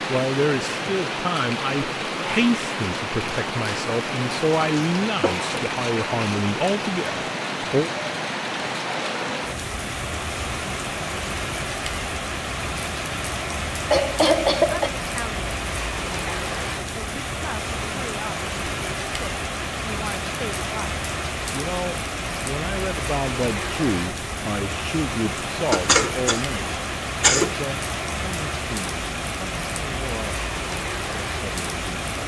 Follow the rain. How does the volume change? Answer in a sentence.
The loudness of the rain stays about the same.